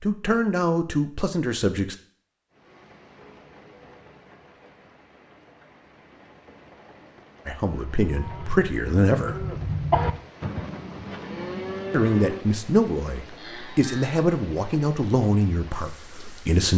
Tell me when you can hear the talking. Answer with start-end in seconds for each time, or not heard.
0.0-1.9, 7.5-9.4, 11.9-16.7.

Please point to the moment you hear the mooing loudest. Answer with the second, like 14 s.
10 s.